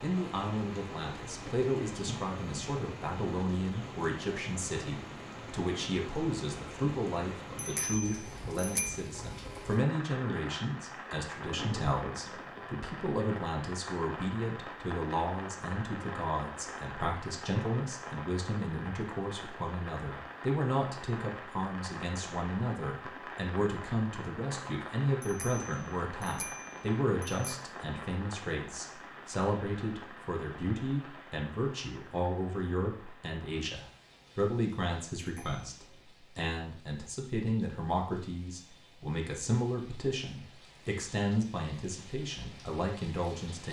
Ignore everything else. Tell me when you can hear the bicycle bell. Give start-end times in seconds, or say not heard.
7.5-9.0, 25.2-27.4, 35.1-36.0.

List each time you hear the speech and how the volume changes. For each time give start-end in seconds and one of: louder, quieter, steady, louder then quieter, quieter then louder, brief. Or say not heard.
0.0-43.6 steady.